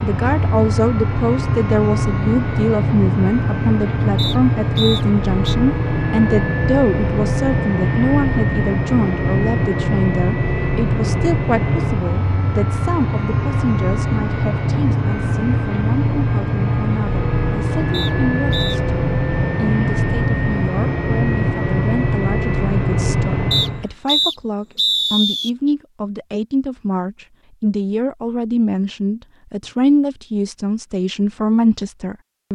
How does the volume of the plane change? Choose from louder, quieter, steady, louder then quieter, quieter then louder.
steady.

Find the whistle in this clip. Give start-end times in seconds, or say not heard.
4.2-5.5, 17.9-18.8, 23.5-25.5.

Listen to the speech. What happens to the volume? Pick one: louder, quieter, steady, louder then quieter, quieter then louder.
quieter then louder.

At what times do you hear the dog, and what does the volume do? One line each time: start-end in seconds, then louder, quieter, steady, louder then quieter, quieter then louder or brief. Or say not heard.
not heard.